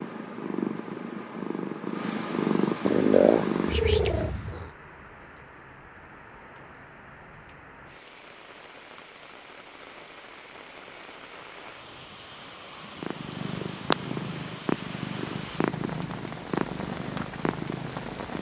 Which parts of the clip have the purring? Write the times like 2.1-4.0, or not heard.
0.0-4.7, 13.0-18.3.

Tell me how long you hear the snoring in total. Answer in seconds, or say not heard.
not heard.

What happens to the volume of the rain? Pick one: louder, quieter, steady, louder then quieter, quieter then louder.
louder.